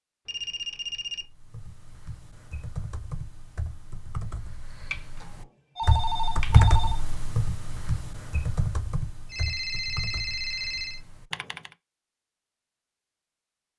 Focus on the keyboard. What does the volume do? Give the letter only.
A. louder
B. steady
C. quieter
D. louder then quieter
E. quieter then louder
D.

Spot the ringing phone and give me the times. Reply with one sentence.
The ringing phone can be heard from 0.2 to 1.2 s, from 4.9 to 7.0 s and from 9.2 to 11.0 s.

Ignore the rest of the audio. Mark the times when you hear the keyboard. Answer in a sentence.
You can hear the keyboard from 1.1 to 11.8 s.